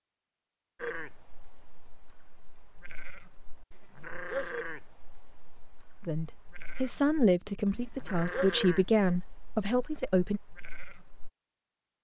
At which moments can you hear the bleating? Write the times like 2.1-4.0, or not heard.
0.8-11.3.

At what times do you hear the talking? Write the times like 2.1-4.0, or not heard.
6.0-10.4.